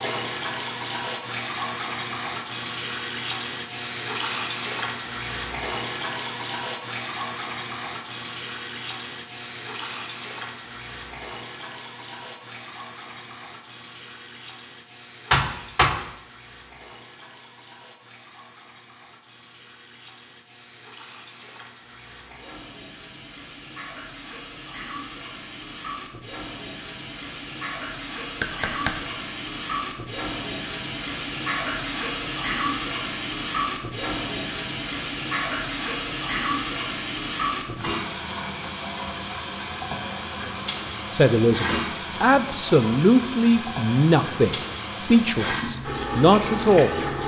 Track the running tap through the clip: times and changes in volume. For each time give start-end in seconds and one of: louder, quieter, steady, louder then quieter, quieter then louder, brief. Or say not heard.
0.0-47.2 quieter then louder.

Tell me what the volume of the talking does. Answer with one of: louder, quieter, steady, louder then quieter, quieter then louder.
steady.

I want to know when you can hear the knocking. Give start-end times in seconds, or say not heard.
15.3-16.1, 28.4-29.0.